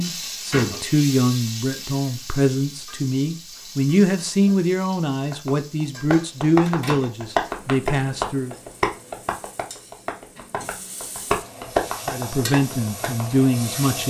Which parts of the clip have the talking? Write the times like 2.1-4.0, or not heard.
0.0-8.6, 12.1-14.0.